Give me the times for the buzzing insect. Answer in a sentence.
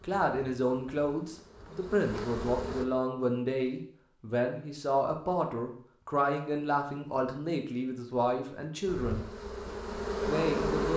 You can hear the buzzing insect from 0.0 to 2.9 s and from 8.8 to 10.9 s.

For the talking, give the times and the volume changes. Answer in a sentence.
The talking can be heard from 0.0 to 9.2 s, at a steady volume; and briefly from 10.2 to 10.9 s.